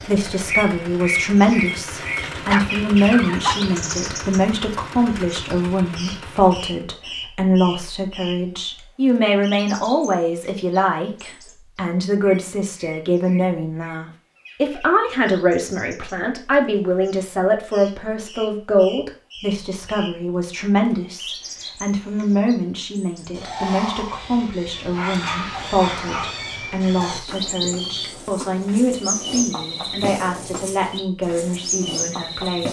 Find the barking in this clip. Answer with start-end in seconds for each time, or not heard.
2.4-3.6, 24.0-26.4.